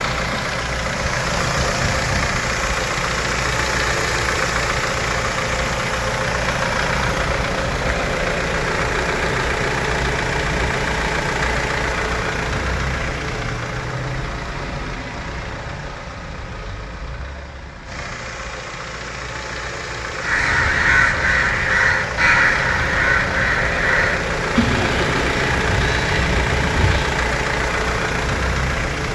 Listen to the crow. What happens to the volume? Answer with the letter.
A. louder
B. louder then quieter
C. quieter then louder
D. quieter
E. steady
D.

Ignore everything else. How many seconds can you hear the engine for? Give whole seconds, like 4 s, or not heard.
29 s.